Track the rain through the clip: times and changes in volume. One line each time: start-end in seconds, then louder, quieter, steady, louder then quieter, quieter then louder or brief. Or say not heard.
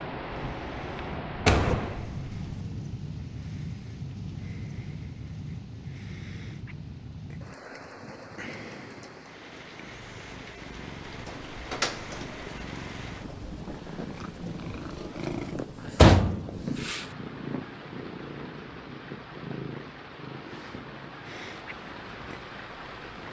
0.0-23.2 quieter.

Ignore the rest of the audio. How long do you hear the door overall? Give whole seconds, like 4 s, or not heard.
4 s.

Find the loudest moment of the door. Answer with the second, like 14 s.
16 s.